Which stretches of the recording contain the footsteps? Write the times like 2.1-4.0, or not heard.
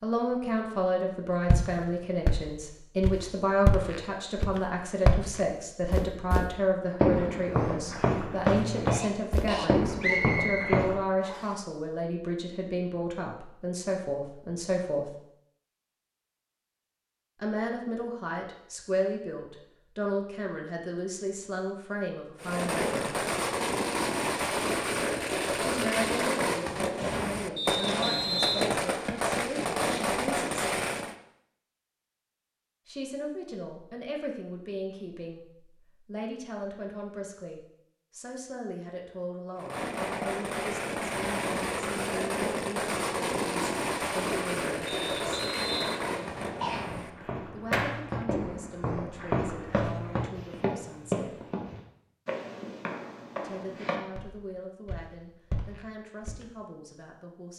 1.4-11.0, 46.8-56.5.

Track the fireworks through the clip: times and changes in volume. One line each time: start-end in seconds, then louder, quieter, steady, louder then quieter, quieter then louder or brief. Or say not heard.
22.4-31.1 steady
39.5-48.1 quieter.